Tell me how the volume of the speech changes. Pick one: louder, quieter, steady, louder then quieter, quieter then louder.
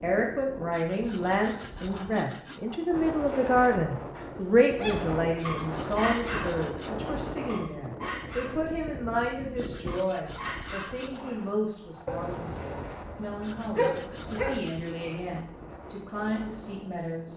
quieter.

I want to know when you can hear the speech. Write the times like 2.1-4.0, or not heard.
0.0-17.3.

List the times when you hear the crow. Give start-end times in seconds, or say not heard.
not heard.